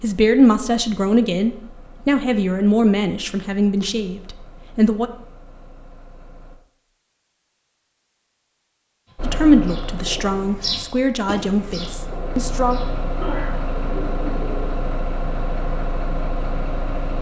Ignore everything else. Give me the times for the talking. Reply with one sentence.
The talking can be heard from 0.0 to 5.1 s and from 9.2 to 12.8 s.